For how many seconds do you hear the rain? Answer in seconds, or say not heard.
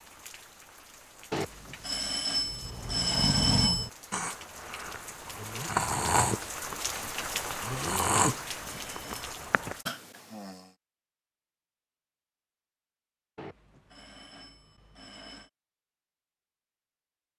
10 s.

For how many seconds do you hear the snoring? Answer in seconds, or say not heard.
8 s.